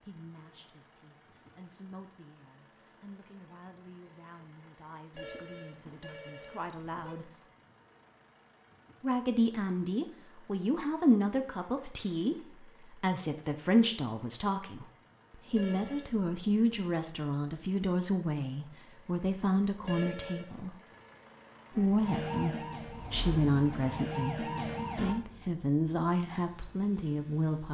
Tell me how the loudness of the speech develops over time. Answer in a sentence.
The volume of the speech goes up.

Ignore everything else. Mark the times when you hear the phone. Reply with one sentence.
You can hear the phone from 5.1 to 7.2 s, from 15.5 to 16.1 s and from 19.8 to 20.6 s.